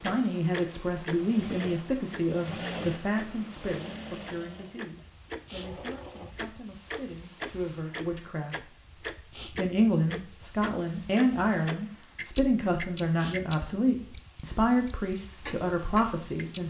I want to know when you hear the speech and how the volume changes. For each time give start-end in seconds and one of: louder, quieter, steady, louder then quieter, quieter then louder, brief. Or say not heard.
0.0-16.6 quieter then louder.